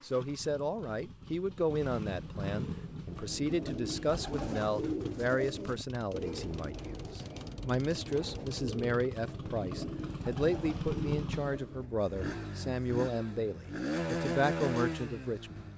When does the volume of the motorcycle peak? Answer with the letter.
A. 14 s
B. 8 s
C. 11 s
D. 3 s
A.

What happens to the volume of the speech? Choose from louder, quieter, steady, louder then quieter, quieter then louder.
steady.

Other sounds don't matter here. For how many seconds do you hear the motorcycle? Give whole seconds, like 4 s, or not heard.
16 s.